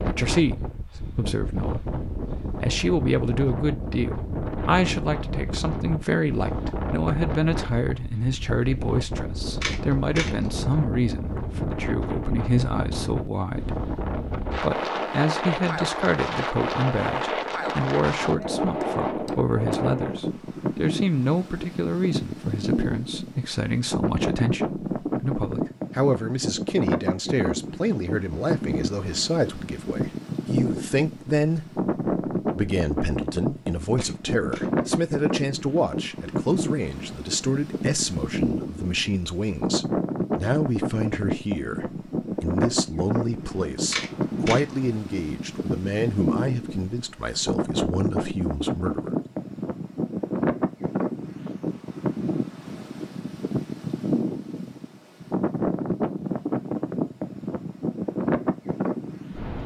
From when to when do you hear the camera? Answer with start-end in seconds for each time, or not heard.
9.6-10.5, 34.0-34.9, 43.9-44.8.